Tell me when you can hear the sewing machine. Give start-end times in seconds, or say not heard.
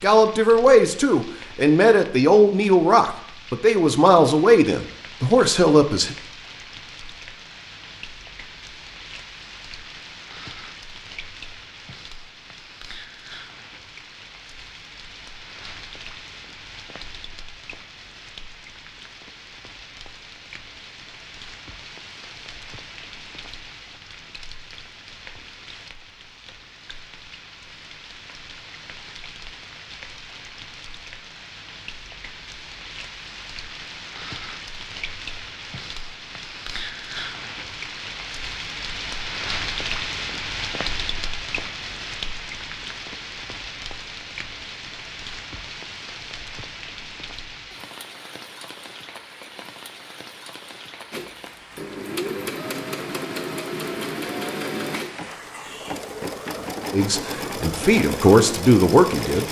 51.1-59.4.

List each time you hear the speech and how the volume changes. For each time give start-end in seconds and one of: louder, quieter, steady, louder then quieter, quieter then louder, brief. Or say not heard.
0.0-6.2 steady
56.9-59.4 brief.